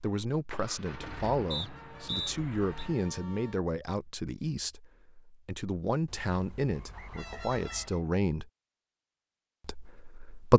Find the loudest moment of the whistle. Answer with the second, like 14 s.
2 s.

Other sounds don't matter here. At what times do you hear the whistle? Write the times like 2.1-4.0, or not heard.
1.5-2.9, 6.9-8.1.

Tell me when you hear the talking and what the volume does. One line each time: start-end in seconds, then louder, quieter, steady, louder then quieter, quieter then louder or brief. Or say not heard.
0.0-8.5 steady
9.6-10.5 brief.